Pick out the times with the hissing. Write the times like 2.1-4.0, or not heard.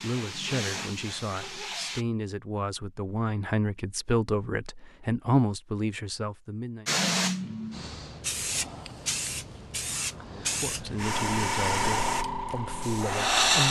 0.0-2.0, 6.8-13.6.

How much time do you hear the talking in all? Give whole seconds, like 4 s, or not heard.
10 s.